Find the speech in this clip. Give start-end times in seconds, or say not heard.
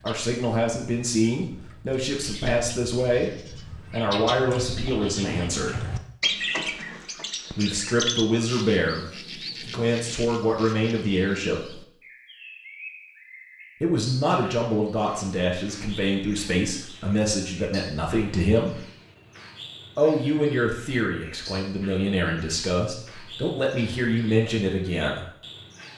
0.0-5.8, 7.5-11.8, 13.8-18.8, 19.9-25.2.